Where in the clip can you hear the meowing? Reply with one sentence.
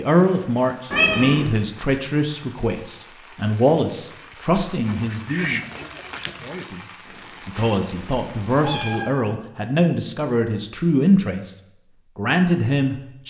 You can hear the meowing from 0.9 to 1.4 s and from 7.0 to 9.1 s.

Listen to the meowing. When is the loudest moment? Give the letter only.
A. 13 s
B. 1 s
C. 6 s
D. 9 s
B.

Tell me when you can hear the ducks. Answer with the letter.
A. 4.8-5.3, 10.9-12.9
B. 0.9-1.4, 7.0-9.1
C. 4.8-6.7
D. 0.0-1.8
C.